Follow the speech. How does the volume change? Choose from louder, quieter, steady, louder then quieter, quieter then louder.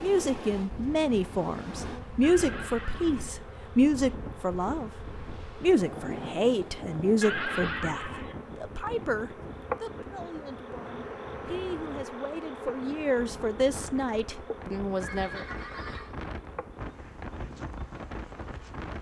quieter then louder.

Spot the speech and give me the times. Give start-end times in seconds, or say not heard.
0.0-15.4.